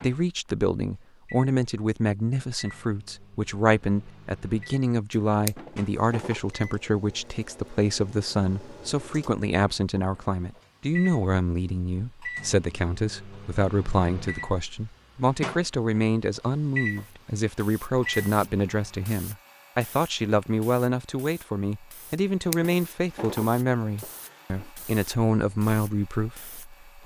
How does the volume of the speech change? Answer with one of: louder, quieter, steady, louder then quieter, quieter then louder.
steady.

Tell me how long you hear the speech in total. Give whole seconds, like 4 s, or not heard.
27 s.